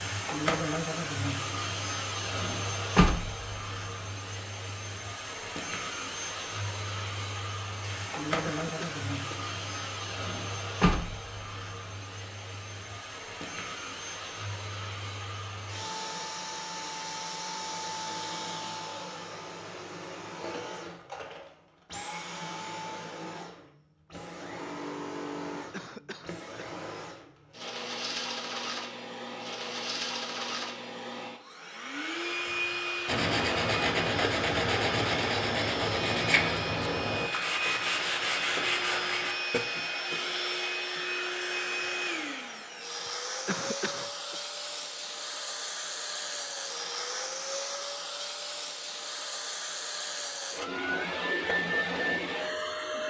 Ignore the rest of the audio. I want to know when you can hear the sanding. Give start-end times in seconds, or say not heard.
33.0-39.6.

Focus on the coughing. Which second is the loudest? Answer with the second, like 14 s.
44 s.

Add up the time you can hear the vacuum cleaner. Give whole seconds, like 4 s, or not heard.
53 s.